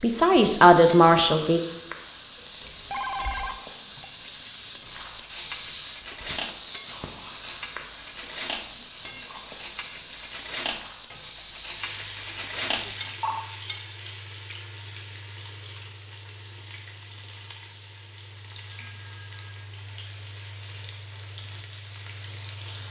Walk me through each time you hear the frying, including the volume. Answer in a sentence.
The frying can be heard from 0.0 to 22.8 s, getting quieter.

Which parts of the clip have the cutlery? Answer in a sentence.
The cutlery can be heard from 4.8 to 13.9 s.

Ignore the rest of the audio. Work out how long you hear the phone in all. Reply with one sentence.
The phone can be heard for 3 seconds in total.